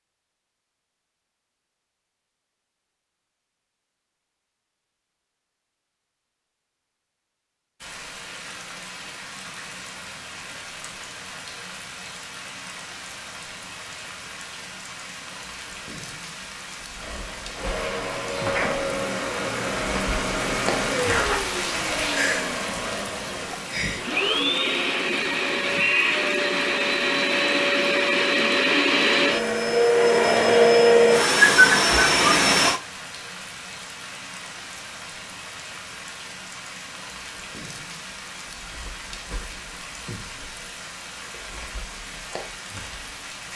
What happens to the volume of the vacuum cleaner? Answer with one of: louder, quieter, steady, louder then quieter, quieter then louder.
louder.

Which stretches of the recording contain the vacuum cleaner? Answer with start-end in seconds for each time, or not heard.
16.9-32.8.